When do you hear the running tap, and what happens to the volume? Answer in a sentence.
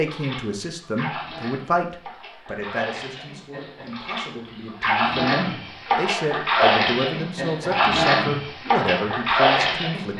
You can hear the running tap from 0.0 to 10.1 s, getting louder.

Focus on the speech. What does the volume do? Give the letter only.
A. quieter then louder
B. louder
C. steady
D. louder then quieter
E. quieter
A.